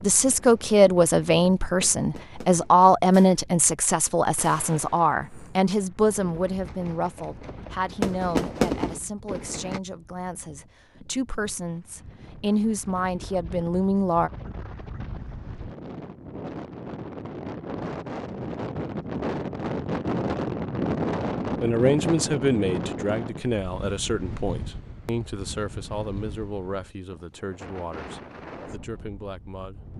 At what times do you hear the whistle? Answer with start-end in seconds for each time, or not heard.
not heard.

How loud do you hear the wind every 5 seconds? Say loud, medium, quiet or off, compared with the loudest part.
quiet, quiet, quiet, loud, loud, quiet.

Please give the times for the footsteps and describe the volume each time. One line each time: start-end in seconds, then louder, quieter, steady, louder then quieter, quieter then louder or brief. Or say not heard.
not heard.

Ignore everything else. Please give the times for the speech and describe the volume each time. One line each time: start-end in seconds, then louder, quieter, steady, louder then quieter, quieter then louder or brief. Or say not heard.
0.0-14.3 quieter then louder
21.6-29.8 quieter.